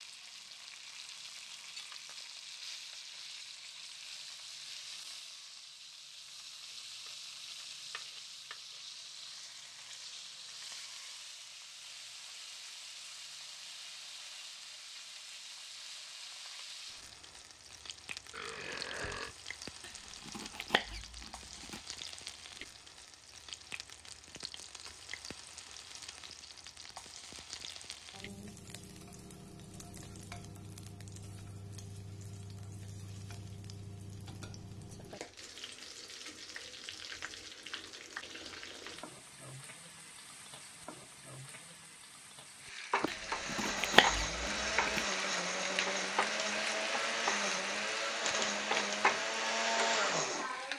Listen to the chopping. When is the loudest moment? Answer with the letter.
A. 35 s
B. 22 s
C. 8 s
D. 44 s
D.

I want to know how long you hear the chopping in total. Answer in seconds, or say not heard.
4 s.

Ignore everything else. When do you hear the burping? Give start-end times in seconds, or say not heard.
18.3-19.4.